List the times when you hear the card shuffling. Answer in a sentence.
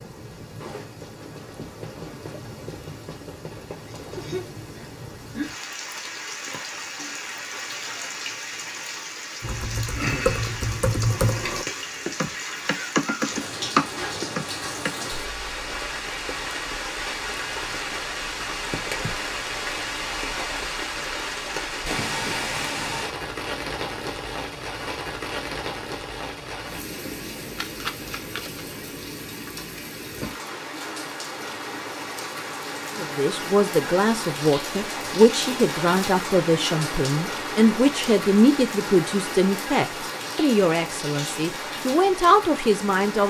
The card shuffling can be heard from 27.6 to 28.6 s.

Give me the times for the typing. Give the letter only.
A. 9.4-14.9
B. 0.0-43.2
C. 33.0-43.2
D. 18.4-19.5
A.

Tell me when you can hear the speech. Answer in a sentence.
The speech can be heard from 33.0 to 43.2 s.